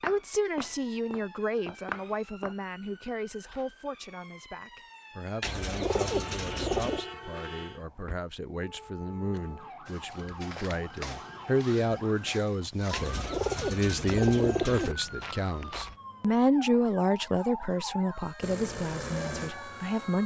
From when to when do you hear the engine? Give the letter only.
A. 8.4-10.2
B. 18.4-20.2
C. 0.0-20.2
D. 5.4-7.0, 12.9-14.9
B.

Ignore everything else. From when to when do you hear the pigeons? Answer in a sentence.
The pigeons can be heard from 5.4 to 7.0 s and from 12.9 to 14.9 s.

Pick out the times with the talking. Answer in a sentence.
You can hear the talking from 0.0 to 20.2 s.